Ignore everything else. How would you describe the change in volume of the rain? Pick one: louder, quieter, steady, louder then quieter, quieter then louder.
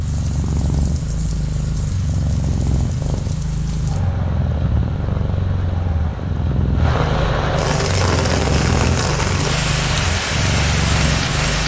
louder.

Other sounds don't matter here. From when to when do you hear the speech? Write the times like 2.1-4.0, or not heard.
not heard.